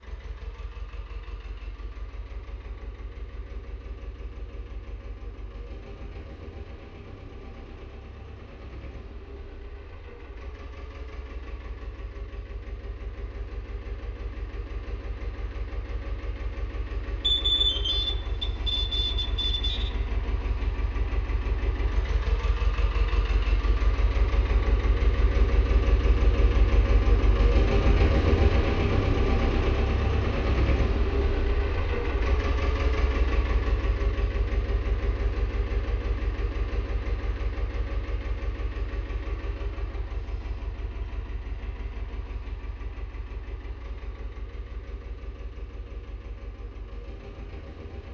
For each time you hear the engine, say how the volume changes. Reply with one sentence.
You can hear the engine from 0.0 to 48.0 s, getting louder then quieter.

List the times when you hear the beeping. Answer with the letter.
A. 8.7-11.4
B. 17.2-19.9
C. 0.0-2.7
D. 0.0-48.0
B.